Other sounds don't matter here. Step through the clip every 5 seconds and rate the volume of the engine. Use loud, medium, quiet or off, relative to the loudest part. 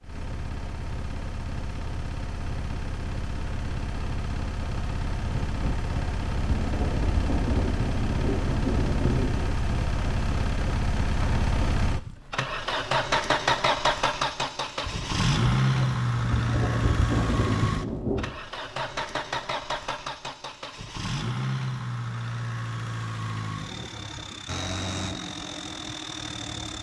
medium, medium, loud, loud, medium, medium.